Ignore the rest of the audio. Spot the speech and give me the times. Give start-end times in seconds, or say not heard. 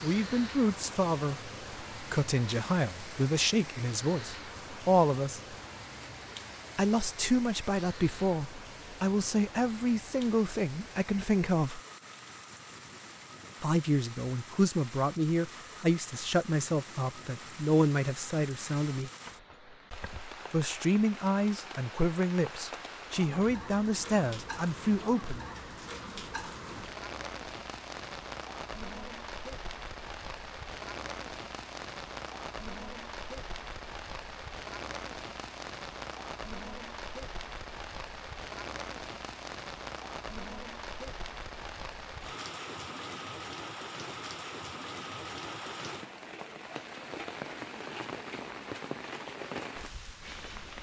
0.0-5.5, 6.8-11.8, 13.6-19.1, 20.5-25.4.